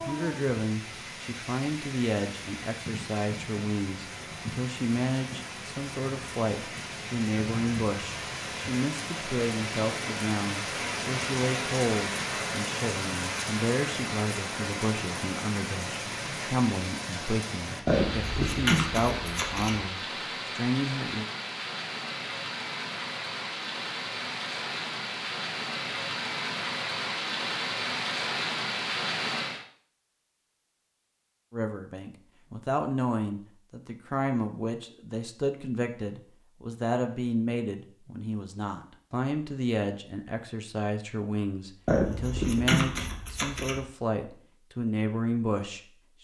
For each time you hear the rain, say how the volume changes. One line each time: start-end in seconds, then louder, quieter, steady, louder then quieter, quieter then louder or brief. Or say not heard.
0.0-29.6 louder.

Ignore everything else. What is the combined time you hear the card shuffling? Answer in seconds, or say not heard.
4 s.